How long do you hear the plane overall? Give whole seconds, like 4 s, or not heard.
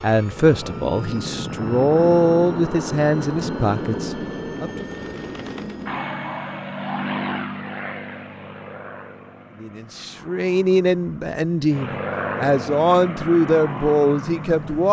15 s.